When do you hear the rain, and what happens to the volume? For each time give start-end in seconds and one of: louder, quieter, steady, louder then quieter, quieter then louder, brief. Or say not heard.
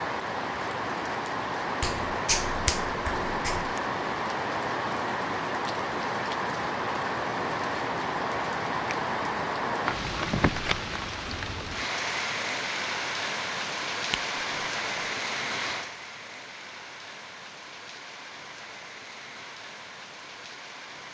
0.0-21.0 quieter.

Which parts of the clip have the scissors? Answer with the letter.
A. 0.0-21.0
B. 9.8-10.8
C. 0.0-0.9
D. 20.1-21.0
B.